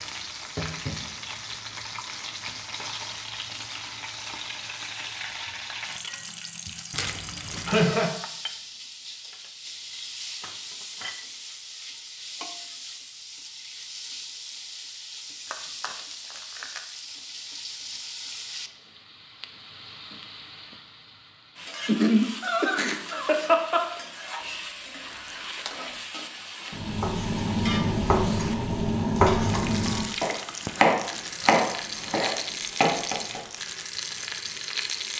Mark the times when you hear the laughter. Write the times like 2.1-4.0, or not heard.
7.7-8.2, 21.9-23.9.